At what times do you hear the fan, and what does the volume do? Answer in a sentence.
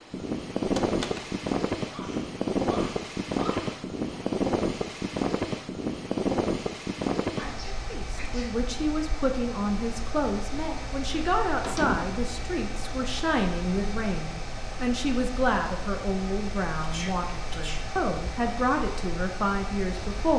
You can hear the fan from 0.0 to 20.3 s, getting quieter.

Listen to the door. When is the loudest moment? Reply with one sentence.
The loudest moment of the door is at 12 seconds.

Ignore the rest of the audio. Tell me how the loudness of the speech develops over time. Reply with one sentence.
The loudness of the speech stays about the same.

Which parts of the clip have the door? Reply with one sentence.
You can hear the door from 0.7 to 1.2 s and from 11.6 to 12.2 s.